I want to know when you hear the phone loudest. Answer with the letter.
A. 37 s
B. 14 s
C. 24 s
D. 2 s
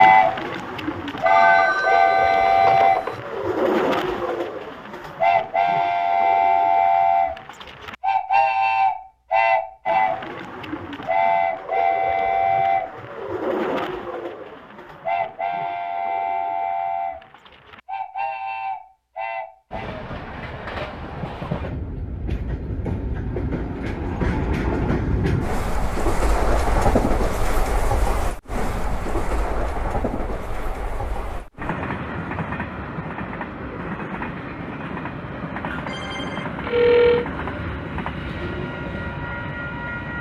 A.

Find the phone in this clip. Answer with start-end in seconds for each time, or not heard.
1.2-3.2, 35.9-37.2.